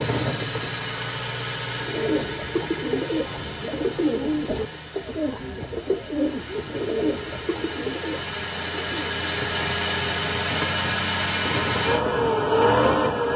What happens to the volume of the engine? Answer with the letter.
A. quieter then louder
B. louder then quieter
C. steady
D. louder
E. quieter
A.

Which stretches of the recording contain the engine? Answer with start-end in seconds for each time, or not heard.
0.0-13.3.